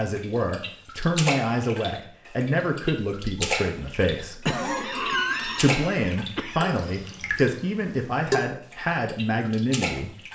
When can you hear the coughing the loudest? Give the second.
5 s.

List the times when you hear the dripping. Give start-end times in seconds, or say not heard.
0.0-10.3.